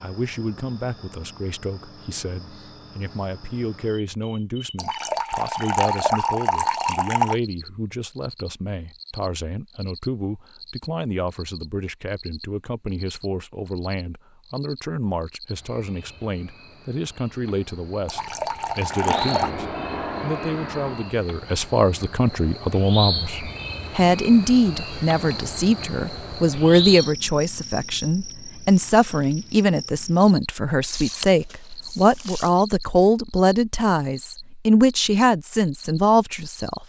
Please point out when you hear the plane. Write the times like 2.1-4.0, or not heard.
18.9-21.1.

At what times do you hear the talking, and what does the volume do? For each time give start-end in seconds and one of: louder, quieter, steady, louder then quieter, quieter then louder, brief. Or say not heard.
0.0-36.8 louder.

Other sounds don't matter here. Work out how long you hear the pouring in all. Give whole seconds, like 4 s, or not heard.
6 s.